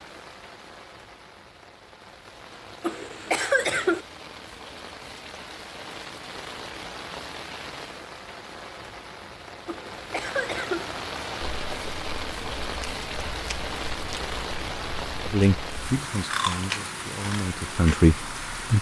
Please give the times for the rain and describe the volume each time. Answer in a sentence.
You can hear the rain from 0.0 to 18.7 s, getting louder.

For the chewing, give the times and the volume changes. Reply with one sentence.
The chewing can be heard from 11.4 to 17.9 s, getting louder.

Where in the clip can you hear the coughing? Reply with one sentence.
You can hear the coughing from 2.8 to 4.0 s and from 9.7 to 10.8 s.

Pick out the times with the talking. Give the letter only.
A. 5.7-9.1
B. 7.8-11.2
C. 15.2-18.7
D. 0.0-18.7
C.